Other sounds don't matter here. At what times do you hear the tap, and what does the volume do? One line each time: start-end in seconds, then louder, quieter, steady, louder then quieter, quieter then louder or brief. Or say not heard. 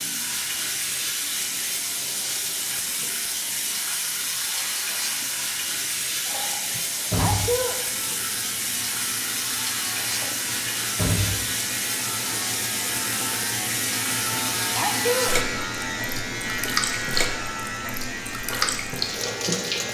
0.0-19.8 steady.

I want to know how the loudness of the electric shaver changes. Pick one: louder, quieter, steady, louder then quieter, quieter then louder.
louder.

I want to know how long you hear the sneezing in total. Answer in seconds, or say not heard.
2 s.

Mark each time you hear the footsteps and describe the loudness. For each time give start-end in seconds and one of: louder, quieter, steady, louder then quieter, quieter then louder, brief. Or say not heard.
not heard.